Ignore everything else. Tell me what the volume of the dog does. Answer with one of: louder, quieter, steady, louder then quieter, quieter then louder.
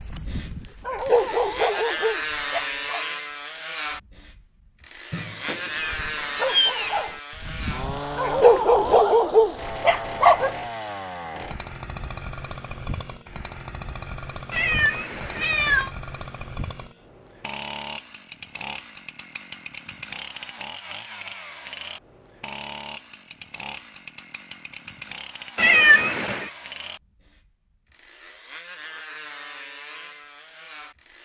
quieter then louder.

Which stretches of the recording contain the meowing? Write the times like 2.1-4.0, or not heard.
5.1-7.0, 14.5-15.9, 25.6-26.5.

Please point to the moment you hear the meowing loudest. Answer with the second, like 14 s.
26 s.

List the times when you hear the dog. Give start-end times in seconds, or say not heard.
0.0-3.0, 5.9-10.6.